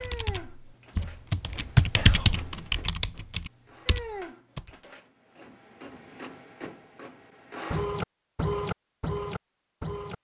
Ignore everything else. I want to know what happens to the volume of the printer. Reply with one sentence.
The loudness of the printer goes up.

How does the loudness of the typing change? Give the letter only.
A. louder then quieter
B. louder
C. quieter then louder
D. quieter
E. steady
A.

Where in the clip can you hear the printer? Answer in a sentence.
The printer can be heard from 0.0 to 10.1 s.